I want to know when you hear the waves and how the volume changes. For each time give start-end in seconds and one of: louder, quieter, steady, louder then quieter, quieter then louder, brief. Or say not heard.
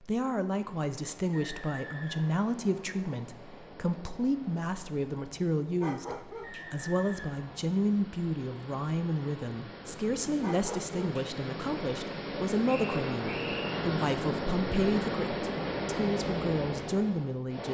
0.0-17.7 louder.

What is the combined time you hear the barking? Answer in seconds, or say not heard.
2 s.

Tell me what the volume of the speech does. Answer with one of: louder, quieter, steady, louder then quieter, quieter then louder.
steady.